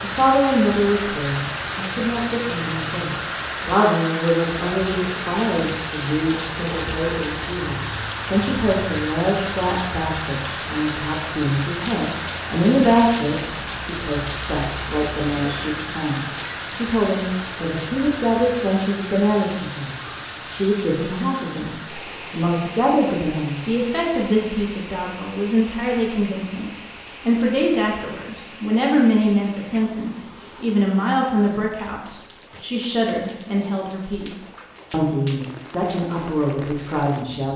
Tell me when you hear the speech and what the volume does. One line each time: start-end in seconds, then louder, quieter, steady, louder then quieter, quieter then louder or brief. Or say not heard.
0.0-37.5 steady.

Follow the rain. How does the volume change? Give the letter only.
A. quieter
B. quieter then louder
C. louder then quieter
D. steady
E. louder
A.